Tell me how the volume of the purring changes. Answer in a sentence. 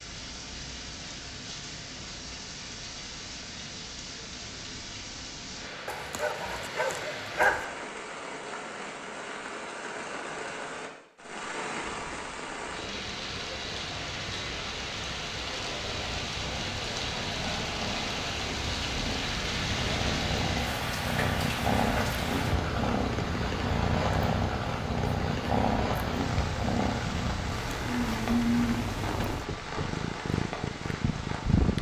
The volume of the purring goes up.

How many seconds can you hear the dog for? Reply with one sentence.
You can hear the dog for 2 seconds altogether.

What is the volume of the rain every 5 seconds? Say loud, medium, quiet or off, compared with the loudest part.
medium, medium, loud, loud, loud, loud, medium.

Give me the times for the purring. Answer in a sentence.
You can hear the purring from 15.8 to 31.7 s.